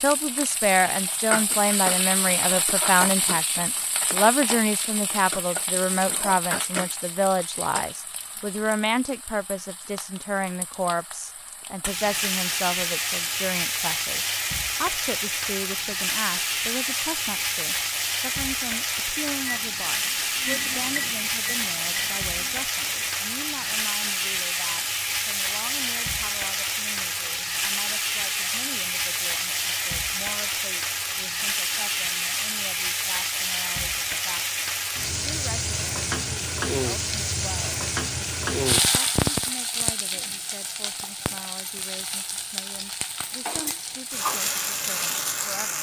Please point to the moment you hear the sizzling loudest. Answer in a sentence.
The loudest moment of the sizzling is at 39 seconds.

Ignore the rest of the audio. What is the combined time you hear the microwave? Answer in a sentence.
The microwave can be heard for 4 seconds in total.